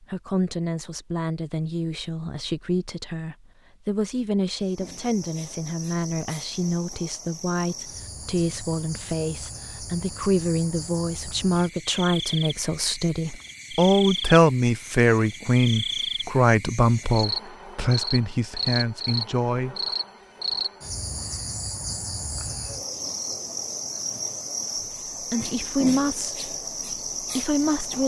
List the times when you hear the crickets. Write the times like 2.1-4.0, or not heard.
4.6-28.0.